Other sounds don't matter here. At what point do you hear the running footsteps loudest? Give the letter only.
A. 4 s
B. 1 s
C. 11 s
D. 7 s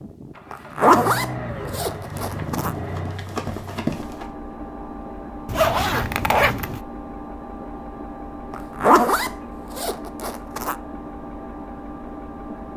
A.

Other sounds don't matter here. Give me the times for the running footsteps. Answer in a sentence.
The running footsteps can be heard from 1.9 to 4.3 s.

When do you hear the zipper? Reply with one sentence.
You can hear the zipper from 0.5 to 2.7 s, from 5.5 to 6.8 s and from 8.5 to 10.8 s.